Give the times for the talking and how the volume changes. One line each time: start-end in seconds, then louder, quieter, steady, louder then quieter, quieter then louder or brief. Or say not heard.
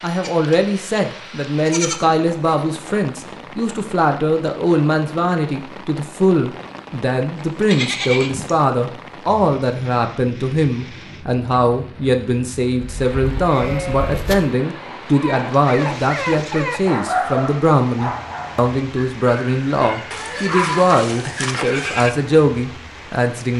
0.0-23.5 steady.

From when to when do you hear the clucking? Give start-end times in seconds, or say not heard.
not heard.